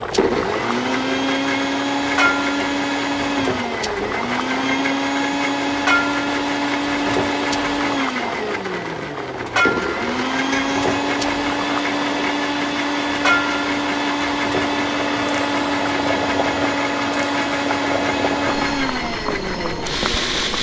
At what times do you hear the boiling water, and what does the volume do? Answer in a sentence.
The boiling water can be heard from 0.0 to 20.5 s, at a steady volume.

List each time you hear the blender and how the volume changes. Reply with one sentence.
The blender can be heard from 0.0 to 20.5 s, at a steady volume.